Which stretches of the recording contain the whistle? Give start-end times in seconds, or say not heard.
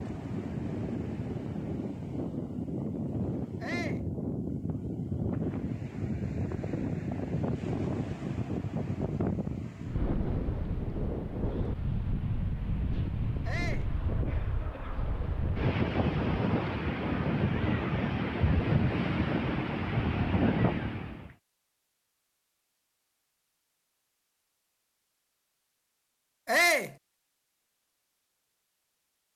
not heard.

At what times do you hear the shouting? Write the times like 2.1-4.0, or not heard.
3.6-4.0, 13.4-13.9, 26.4-26.9.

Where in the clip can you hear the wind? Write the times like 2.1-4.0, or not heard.
0.0-21.4.